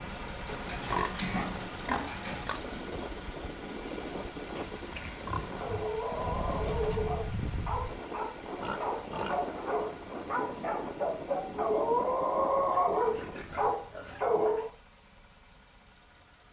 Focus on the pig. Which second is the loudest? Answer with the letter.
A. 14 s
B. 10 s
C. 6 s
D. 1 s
D.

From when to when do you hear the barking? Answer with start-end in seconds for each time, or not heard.
5.6-14.7.